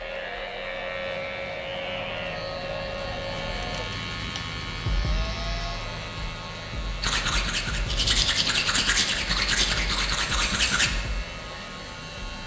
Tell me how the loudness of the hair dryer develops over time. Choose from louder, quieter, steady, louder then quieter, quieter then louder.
quieter.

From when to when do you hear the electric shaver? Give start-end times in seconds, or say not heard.
0.0-12.4.